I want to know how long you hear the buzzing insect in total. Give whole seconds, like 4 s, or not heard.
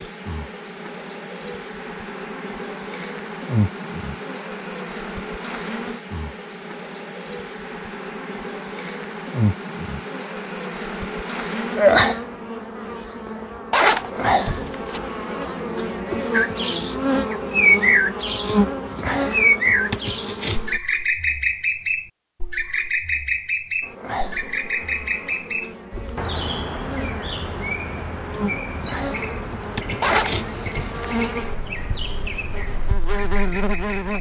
31 s.